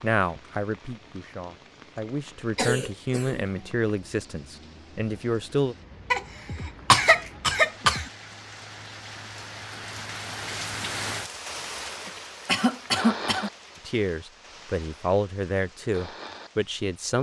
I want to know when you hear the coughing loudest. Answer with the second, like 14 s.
7 s.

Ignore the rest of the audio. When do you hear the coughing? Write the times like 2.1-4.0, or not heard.
2.5-3.6, 6.1-8.1, 12.1-13.5.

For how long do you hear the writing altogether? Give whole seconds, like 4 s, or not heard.
not heard.